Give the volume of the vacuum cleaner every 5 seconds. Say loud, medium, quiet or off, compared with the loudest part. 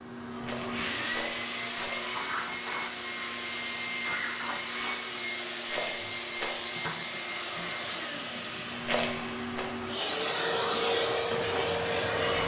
medium, medium, loud.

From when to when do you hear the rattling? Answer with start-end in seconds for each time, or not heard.
0.4-2.0, 5.7-6.5, 8.8-9.7.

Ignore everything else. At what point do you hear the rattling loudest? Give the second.
9 s.